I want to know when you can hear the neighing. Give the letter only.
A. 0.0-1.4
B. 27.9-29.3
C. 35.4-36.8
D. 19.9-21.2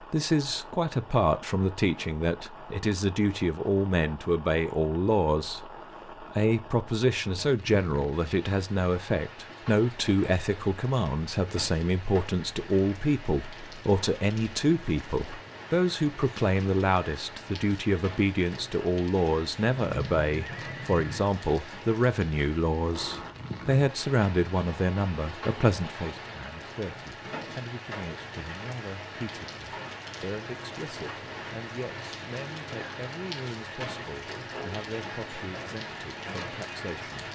D.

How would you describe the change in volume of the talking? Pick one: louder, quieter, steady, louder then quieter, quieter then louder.
quieter.